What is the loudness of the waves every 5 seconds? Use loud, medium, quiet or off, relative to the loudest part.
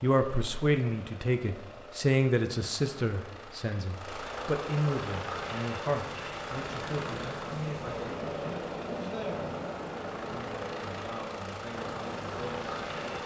off, loud, loud.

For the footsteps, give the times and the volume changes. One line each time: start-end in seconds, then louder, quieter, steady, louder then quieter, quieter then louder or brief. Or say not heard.
not heard.